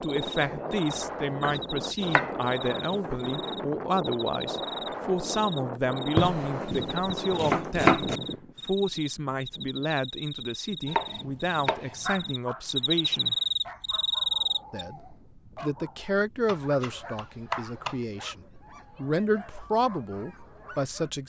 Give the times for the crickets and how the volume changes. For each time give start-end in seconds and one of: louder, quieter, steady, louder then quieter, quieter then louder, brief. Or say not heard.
0.0-14.8 louder.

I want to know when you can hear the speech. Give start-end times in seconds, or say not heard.
0.0-8.1, 8.7-13.3, 14.7-21.2.